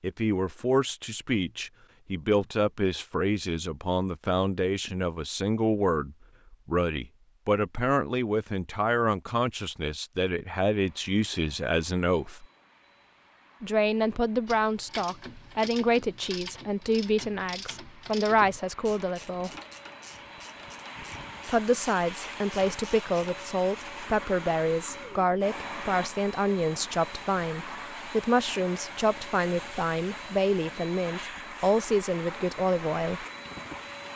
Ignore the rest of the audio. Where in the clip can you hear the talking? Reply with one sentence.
You can hear the talking from 0.0 to 12.4 s, from 13.6 to 19.5 s and from 21.4 to 33.2 s.